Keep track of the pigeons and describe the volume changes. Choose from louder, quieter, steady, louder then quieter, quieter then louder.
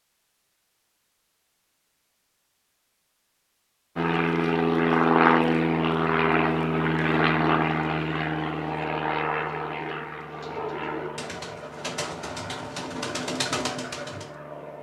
louder.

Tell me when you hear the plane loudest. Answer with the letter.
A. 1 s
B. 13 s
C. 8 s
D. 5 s
D.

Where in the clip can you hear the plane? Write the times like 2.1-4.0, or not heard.
4.0-14.7.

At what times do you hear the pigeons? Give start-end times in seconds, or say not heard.
8.0-14.3.